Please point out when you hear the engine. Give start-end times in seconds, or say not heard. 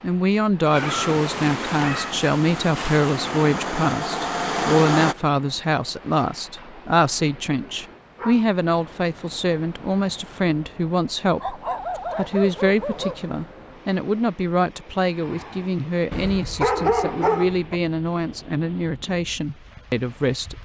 1.8-5.2.